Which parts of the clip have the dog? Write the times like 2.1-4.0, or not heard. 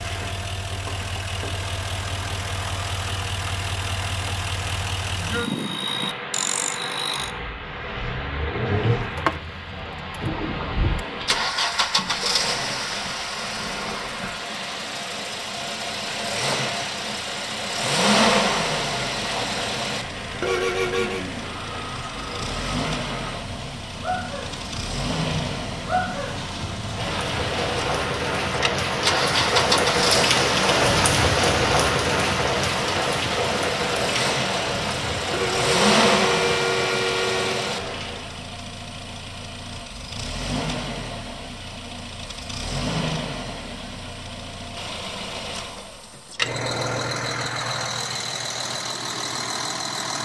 not heard.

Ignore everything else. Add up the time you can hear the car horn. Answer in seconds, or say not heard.
3 s.